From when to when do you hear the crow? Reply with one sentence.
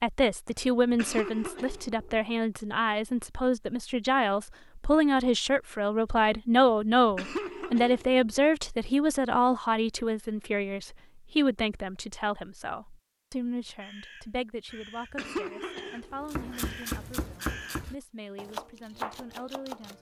You can hear the crow from 13.8 to 17.9 s.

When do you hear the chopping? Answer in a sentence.
The chopping can be heard from 16.3 to 19.9 s.